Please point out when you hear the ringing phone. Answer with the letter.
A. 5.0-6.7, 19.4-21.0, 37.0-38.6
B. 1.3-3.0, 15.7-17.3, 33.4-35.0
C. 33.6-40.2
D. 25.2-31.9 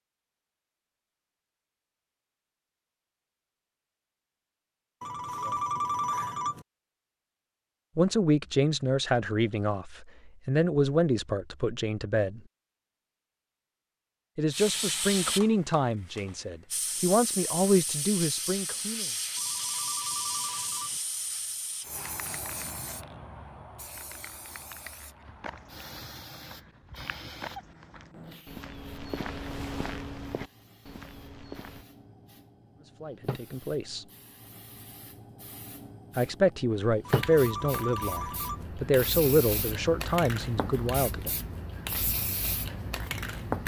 A.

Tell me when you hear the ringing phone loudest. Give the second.
6 s.